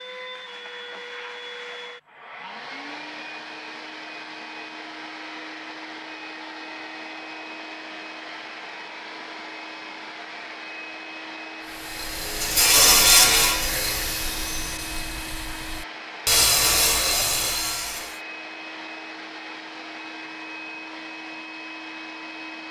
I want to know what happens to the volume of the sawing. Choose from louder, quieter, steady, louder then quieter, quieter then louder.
quieter then louder.